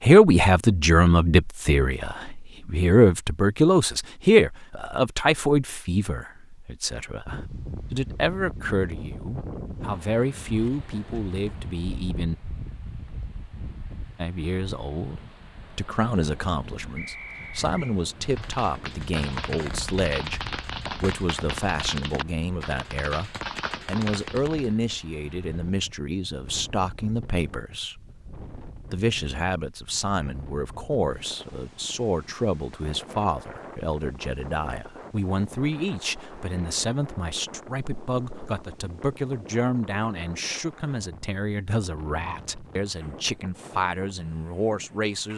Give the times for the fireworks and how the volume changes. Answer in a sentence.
The fireworks can be heard from 18.2 to 24.8 s, at a steady volume.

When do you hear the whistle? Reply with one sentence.
The whistle can be heard from 16.9 to 17.9 s.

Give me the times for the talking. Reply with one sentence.
The talking can be heard from 0.0 to 12.3 s and from 14.2 to 45.3 s.